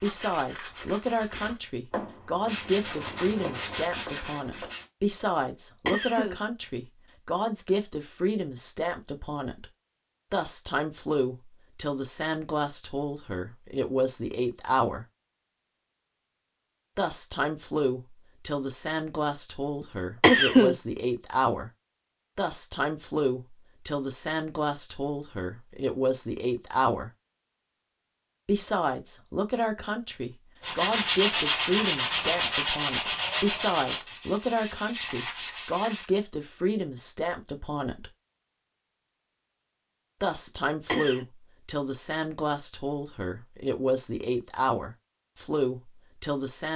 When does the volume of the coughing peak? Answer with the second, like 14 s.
20 s.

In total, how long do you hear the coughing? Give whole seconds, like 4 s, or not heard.
2 s.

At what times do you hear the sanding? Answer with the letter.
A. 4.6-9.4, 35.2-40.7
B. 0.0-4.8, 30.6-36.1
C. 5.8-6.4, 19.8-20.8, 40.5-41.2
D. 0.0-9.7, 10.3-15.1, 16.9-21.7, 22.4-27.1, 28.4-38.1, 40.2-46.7
B.